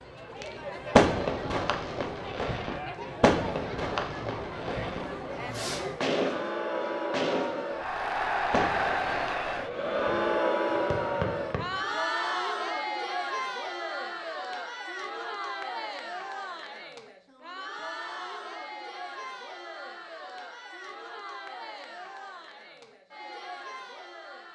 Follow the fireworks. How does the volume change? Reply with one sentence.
The loudness of the fireworks goes down.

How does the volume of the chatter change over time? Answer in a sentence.
The loudness of the chatter goes up, then down.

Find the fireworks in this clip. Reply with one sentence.
The fireworks can be heard from 0.4 to 11.8 s.